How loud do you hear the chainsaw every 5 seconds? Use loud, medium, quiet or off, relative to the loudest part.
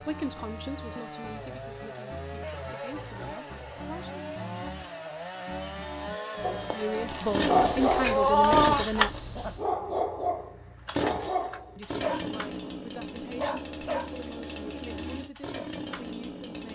medium, loud, medium, medium.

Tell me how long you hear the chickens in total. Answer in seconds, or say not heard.
2 s.